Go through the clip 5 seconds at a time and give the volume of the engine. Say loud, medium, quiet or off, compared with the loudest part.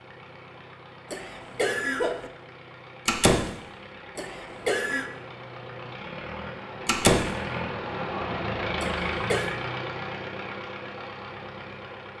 quiet, loud, medium.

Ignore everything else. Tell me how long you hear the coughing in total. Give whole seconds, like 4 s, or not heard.
3 s.